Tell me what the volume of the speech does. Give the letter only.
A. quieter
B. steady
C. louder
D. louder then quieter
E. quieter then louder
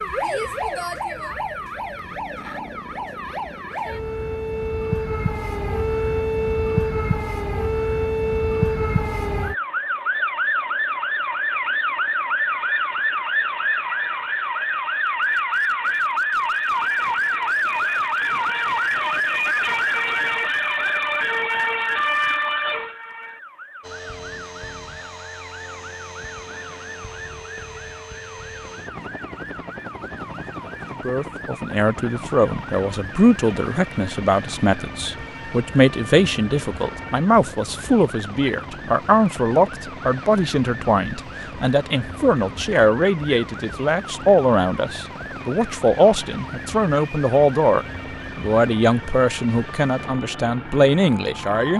B.